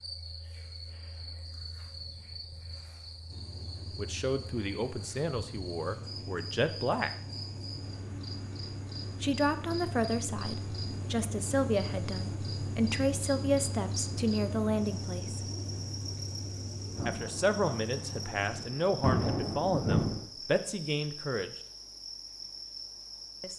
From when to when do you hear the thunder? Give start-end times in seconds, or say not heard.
16.9-20.2.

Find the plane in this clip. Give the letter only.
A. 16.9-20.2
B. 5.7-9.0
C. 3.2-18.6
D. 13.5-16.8
C.